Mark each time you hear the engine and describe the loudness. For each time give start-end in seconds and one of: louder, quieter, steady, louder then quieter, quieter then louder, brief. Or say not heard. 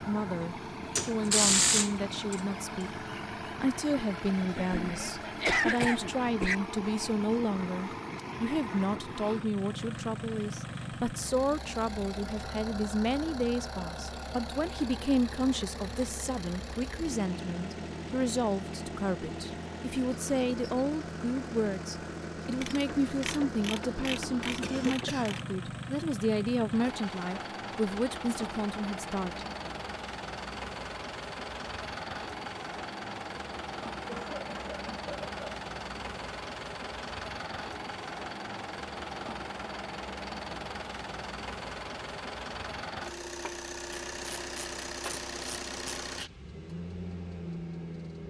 0.0-48.2 steady.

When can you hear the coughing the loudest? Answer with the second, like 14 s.
6 s.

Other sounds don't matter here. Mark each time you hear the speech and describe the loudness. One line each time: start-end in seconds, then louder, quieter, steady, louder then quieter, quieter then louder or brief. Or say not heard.
0.1-3.0 brief
3.6-29.4 steady.